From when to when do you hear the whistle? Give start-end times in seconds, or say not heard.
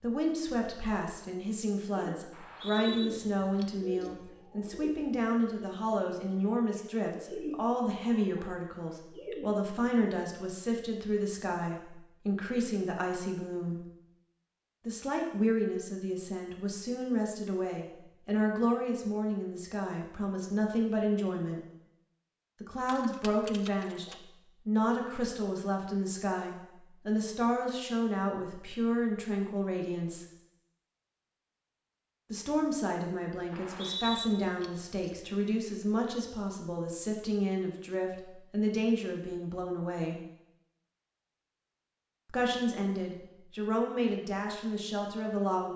2.3-3.0, 33.5-34.2.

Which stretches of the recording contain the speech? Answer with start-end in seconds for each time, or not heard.
0.0-13.8, 14.8-21.6, 22.6-30.2, 32.3-40.2, 42.2-45.7.